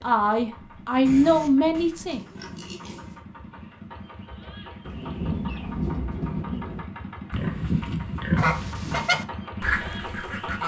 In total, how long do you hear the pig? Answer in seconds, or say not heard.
4 s.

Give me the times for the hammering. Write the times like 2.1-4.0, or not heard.
not heard.